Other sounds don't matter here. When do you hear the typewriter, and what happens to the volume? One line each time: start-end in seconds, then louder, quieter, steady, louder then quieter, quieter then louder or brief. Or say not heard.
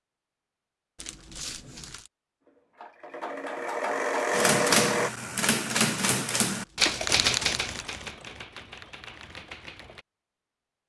4.3-10.1 quieter.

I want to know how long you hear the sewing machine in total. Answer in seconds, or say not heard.
3 s.